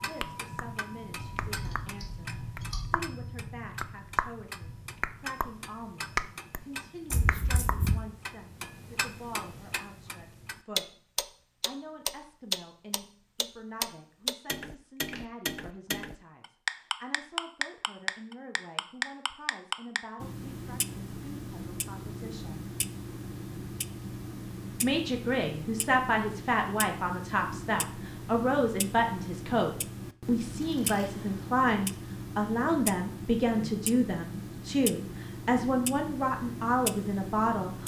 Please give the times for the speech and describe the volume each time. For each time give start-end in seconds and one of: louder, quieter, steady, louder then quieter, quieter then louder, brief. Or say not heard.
0.0-10.8 steady
11.6-22.8 steady
24.8-37.8 steady.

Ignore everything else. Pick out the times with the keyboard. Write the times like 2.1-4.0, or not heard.
1.1-2.9.